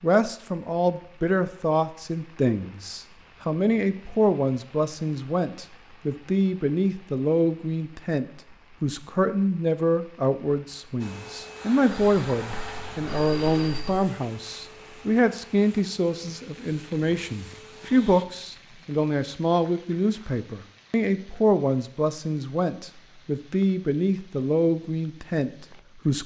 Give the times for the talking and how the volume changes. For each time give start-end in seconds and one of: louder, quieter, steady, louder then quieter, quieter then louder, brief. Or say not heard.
0.0-26.2 steady.